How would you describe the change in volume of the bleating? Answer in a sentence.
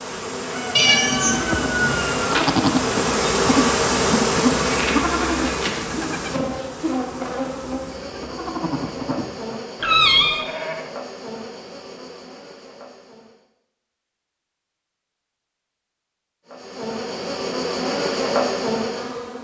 The volume of the bleating goes down.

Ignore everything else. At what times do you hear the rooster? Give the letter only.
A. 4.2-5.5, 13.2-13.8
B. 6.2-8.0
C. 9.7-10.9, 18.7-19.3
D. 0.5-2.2
D.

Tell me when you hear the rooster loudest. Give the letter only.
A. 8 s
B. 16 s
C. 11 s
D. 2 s
D.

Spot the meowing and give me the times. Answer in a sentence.
You can hear the meowing from 0.8 to 2.0 s and from 9.8 to 10.4 s.